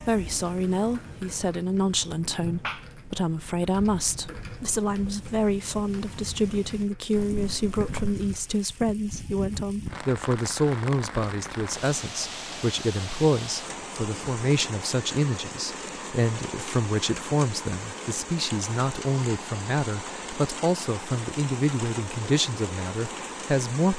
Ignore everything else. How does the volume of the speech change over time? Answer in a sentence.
The volume of the speech stays about the same.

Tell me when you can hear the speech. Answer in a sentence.
The speech can be heard from 0.0 to 23.9 s.